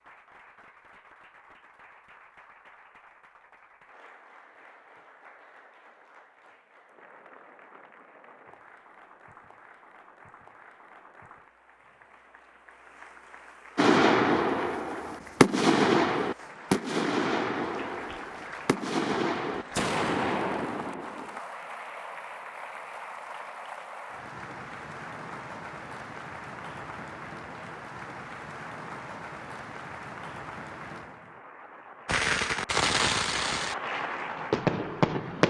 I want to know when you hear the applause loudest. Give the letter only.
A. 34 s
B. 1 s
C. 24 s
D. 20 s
A.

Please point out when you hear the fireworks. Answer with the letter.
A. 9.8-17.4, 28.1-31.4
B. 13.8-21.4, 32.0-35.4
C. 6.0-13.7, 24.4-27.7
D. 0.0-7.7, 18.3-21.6
B.